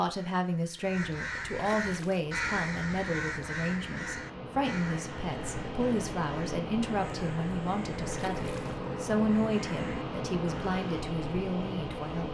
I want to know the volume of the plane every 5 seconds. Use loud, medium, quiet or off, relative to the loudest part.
medium, loud, loud.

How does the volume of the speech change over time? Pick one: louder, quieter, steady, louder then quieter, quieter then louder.
steady.